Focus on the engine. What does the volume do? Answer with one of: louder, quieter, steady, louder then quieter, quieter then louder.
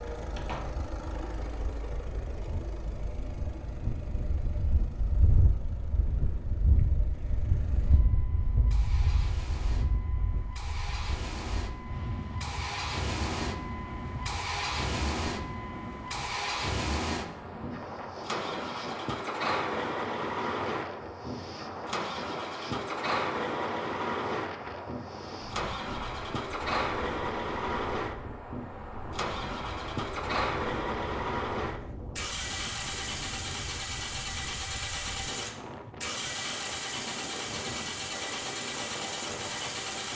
louder.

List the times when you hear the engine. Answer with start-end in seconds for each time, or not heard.
0.0-40.1.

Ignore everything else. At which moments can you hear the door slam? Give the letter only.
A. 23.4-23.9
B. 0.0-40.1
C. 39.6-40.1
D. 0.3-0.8
D.